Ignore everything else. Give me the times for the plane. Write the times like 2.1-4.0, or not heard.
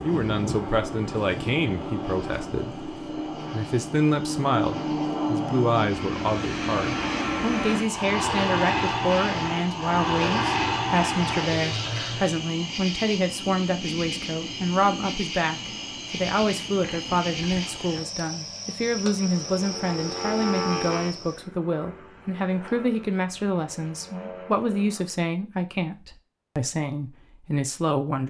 0.0-12.4, 19.2-25.2.